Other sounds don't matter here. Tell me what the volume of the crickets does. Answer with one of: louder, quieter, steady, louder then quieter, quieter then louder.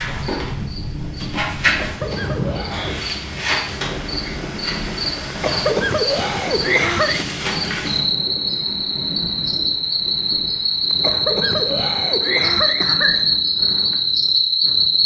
louder.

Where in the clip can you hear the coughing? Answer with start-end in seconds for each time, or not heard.
1.6-3.0, 5.3-7.2, 10.9-13.2.